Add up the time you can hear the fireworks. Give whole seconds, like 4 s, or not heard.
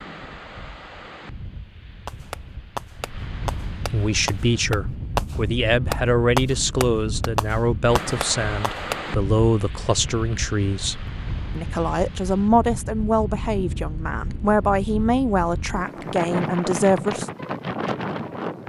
7 s.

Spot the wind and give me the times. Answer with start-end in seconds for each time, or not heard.
0.0-18.6.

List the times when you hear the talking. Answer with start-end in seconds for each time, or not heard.
3.9-10.9, 11.6-17.3.